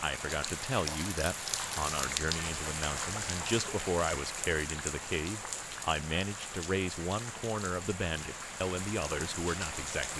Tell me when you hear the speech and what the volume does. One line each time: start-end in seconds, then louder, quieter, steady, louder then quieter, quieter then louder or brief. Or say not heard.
0.0-10.1 steady.